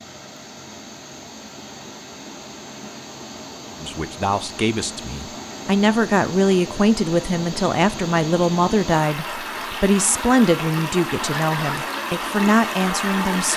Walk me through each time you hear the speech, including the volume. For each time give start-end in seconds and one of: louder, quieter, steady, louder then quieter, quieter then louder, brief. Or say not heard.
3.8-13.5 steady.